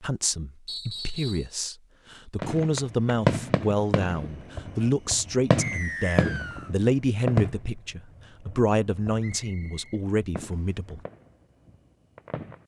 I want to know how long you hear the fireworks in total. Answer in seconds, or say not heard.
10 s.